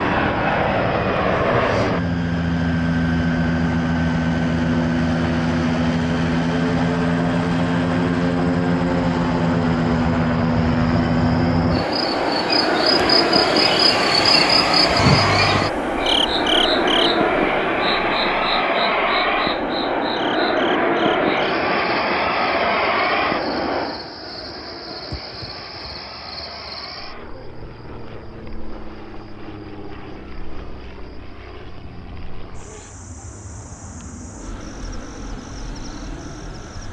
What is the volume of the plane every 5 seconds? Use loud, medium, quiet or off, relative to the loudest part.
loud, loud, loud, loud, loud, quiet, quiet, quiet.